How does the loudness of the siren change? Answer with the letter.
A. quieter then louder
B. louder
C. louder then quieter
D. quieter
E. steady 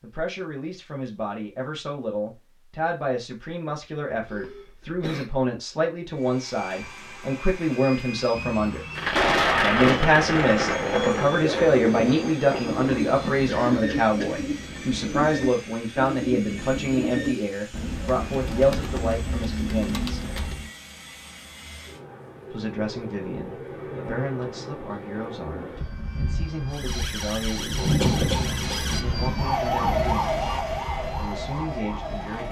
C.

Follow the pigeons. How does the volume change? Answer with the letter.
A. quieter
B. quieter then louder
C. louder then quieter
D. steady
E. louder
D.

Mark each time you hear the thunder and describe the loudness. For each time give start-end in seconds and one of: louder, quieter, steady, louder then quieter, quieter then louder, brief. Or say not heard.
8.9-13.4 quieter
27.6-30.2 brief.